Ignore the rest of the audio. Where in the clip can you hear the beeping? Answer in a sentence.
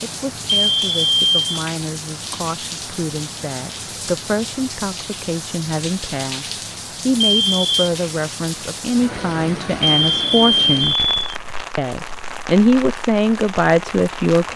You can hear the beeping from 0.7 to 1.6 s, from 7.2 to 7.9 s and from 9.8 to 11.3 s.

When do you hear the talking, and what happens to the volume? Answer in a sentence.
The talking can be heard from 0.0 to 10.9 s, getting louder; and briefly from 11.8 to 14.5 s.